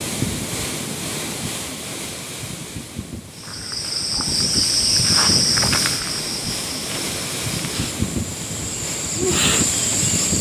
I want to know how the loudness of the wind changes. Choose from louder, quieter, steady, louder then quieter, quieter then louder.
quieter then louder.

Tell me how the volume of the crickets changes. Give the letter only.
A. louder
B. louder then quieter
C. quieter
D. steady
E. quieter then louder
E.